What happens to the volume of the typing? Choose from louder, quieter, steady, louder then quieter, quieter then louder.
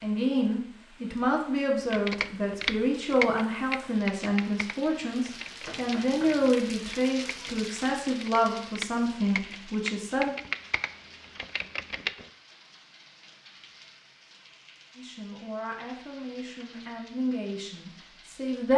quieter then louder.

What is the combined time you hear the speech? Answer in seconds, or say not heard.
14 s.